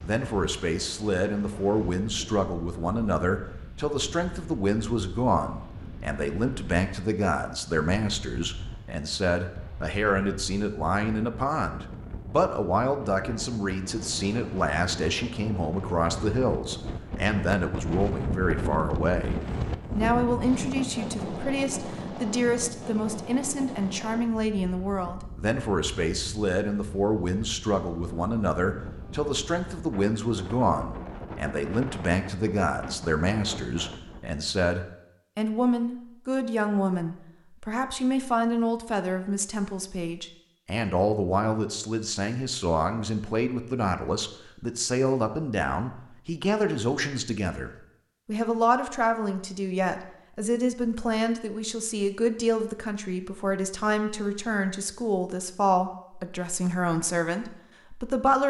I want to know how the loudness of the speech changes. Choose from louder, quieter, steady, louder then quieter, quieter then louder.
steady.